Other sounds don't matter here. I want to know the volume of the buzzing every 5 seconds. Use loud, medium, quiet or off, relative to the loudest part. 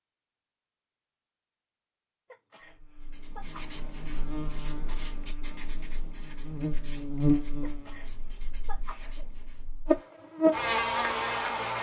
quiet, medium, loud.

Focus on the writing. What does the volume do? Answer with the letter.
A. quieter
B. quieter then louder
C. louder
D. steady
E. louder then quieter
A.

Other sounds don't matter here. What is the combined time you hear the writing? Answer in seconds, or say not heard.
7 s.